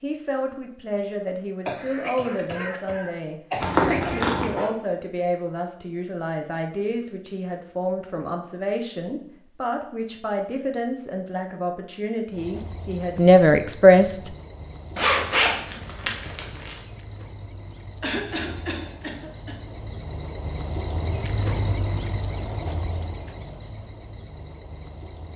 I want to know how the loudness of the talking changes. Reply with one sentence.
The volume of the talking goes up.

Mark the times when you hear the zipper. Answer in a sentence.
You can hear the zipper from 3.6 to 4.7 s and from 14.9 to 16.8 s.